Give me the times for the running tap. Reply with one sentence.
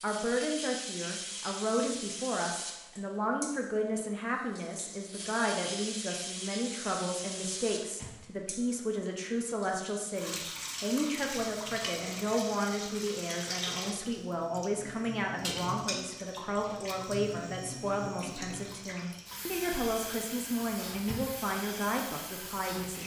You can hear the running tap from 0.0 to 23.0 s.